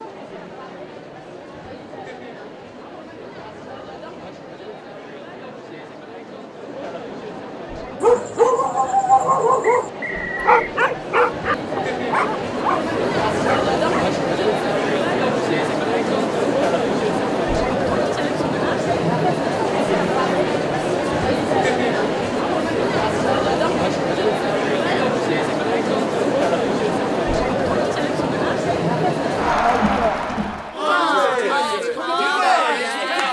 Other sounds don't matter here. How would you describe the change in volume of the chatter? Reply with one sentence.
The volume of the chatter goes up.